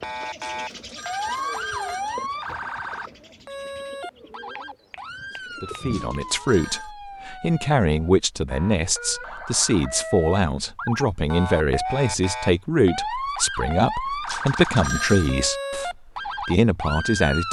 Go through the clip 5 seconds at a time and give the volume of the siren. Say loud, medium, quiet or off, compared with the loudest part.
loud, medium, loud, loud.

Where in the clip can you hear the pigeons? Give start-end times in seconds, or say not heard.
0.0-6.3.